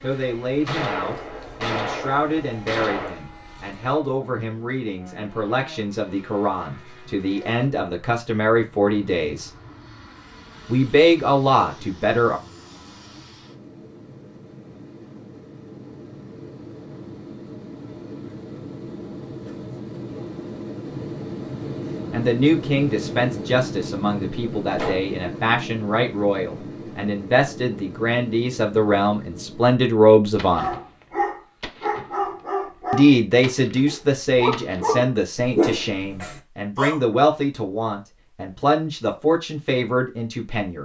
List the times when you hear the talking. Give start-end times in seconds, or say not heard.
0.0-9.5, 10.7-12.4, 22.1-30.7, 32.9-40.7.